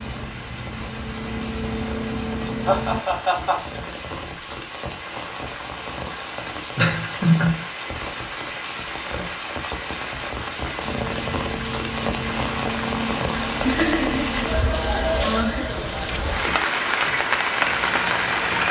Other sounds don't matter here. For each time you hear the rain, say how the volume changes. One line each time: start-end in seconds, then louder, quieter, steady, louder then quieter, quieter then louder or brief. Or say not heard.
0.0-18.6 louder.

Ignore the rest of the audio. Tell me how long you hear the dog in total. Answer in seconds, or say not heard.
not heard.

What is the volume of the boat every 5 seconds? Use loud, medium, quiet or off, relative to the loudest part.
loud, off, loud, medium.